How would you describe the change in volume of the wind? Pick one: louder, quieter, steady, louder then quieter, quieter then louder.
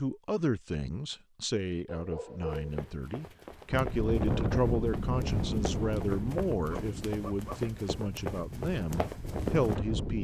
quieter then louder.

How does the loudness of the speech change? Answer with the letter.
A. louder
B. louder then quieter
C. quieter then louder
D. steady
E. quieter
D.